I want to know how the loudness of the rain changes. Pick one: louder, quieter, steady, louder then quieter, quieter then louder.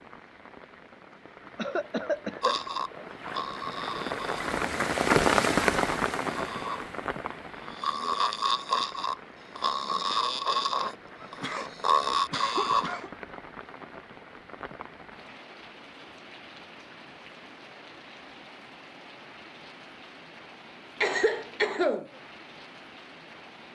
louder then quieter.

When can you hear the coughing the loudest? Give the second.
22 s.